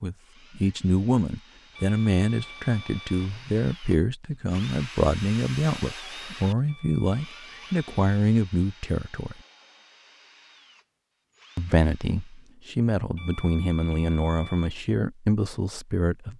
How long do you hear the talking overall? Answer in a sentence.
The talking can be heard for 14 seconds in total.